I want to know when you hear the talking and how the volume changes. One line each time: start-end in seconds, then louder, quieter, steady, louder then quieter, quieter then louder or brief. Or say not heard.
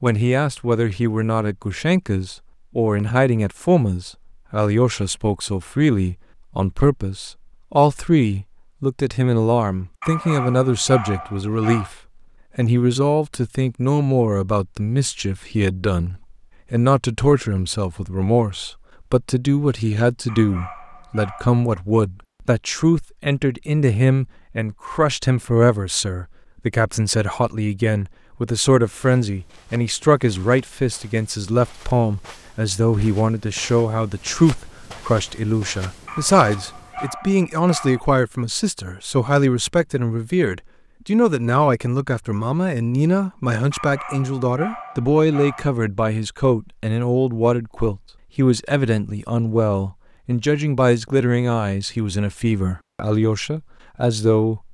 0.0-11.9 steady
12.6-54.6 steady.